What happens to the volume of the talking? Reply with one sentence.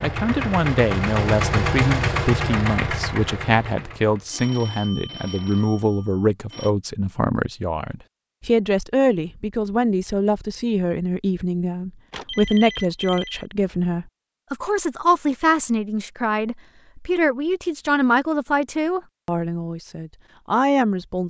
The loudness of the talking stays about the same.